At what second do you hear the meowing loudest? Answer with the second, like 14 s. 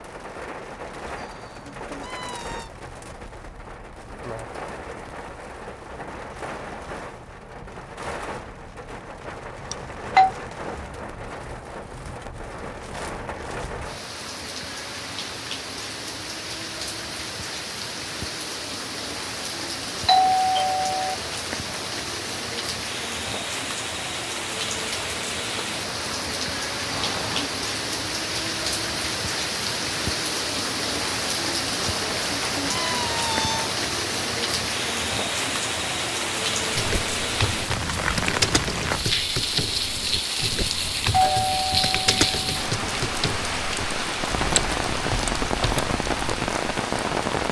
33 s.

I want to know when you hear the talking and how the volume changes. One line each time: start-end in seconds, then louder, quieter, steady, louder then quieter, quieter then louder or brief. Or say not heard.
not heard.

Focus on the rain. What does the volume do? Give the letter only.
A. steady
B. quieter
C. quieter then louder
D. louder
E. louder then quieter
D.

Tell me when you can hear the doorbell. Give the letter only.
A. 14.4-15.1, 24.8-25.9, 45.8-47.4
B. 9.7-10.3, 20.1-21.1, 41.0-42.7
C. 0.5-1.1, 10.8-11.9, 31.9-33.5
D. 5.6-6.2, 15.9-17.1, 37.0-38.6
B.